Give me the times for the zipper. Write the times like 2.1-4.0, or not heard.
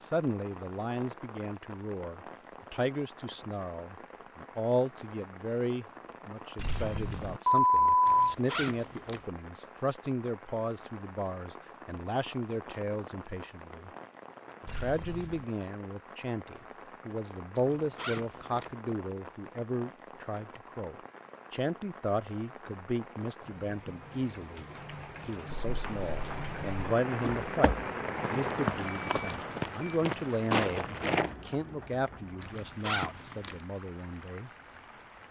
8.1-9.2, 17.6-18.8, 32.4-33.6.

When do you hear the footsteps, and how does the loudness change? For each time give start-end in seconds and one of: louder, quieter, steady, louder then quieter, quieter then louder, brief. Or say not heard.
25.5-31.4 louder.